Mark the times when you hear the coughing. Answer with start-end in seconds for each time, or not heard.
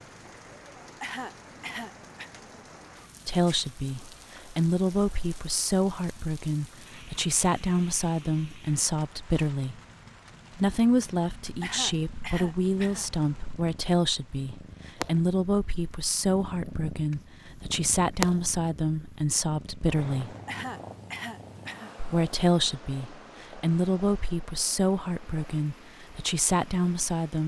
1.0-2.3, 11.6-13.1, 20.4-21.9.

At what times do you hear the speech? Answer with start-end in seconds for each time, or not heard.
3.2-9.8, 10.6-20.4, 21.9-27.4.